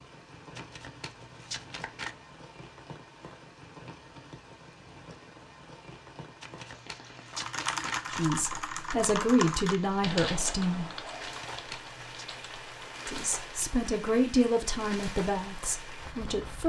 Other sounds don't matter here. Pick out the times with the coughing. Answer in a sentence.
You can't hear the coughing here.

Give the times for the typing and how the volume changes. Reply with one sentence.
You can hear the typing from 7.3 to 13.7 s, getting quieter.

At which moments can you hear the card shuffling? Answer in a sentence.
The card shuffling can be heard from 0.6 to 2.1 s, from 6.4 to 8.3 s and from 11.2 to 12.2 s.